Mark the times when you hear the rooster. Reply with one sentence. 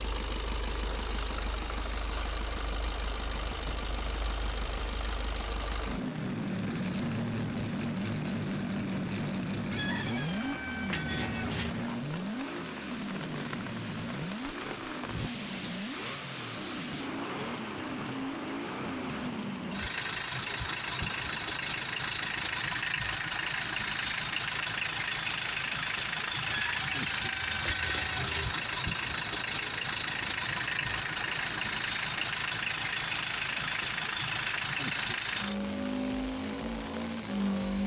The rooster can be heard from 9.7 to 11.8 s and from 26.4 to 28.5 s.